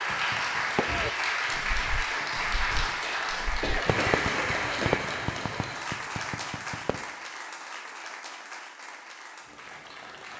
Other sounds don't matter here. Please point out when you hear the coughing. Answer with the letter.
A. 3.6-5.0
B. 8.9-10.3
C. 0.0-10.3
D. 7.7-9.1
A.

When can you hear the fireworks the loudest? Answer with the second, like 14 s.
5 s.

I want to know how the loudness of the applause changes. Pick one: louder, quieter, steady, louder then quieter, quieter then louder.
quieter.